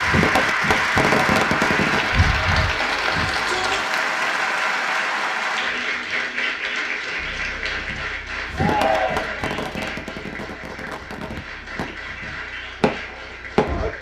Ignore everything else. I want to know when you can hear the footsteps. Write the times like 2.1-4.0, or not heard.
not heard.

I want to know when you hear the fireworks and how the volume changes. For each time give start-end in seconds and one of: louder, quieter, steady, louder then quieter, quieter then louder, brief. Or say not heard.
0.0-2.1 brief
7.8-13.9 quieter then louder.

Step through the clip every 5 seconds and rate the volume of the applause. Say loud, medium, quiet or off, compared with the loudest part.
loud, medium, quiet.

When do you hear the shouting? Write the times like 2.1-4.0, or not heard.
3.1-3.9, 8.5-9.4.